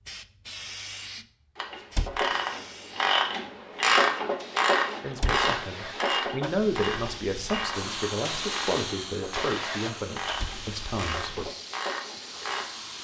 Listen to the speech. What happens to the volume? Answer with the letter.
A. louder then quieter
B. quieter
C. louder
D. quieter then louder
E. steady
A.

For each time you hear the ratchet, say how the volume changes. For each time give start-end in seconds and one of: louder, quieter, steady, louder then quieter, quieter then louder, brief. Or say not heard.
1.6-12.7 quieter.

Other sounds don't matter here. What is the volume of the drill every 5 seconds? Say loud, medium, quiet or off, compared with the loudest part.
off, loud, medium.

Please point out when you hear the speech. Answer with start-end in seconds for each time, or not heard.
5.0-11.4.